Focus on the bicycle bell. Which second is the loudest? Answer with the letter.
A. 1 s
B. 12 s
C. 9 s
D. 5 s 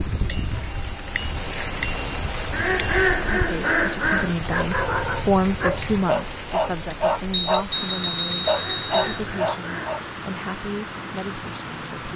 A.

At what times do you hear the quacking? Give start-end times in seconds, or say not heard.
2.5-4.3, 8.5-10.1.